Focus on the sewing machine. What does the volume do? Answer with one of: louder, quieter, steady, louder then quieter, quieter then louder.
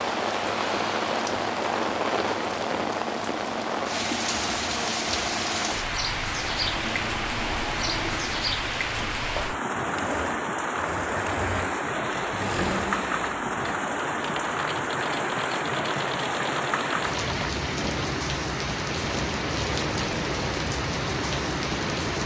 steady.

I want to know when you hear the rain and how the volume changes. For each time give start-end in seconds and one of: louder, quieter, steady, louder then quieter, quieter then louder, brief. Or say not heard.
0.0-22.2 steady.